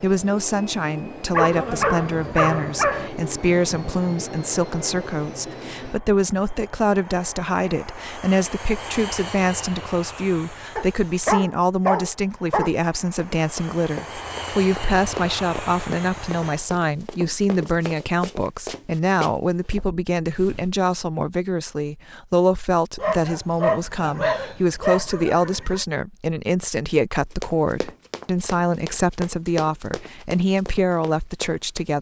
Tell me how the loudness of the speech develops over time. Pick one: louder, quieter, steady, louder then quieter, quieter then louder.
steady.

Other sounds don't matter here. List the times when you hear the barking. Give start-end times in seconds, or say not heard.
1.3-3.1, 10.8-12.7, 22.9-25.9.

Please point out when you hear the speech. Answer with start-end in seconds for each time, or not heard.
0.0-31.9.